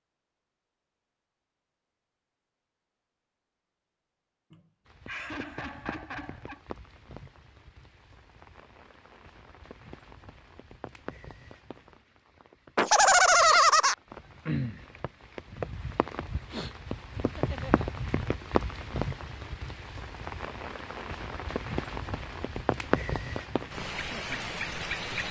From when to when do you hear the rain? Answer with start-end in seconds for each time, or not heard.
4.8-25.2.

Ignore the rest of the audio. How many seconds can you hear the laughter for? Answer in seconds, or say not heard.
4 s.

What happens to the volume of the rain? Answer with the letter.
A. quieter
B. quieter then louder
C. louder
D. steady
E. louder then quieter
C.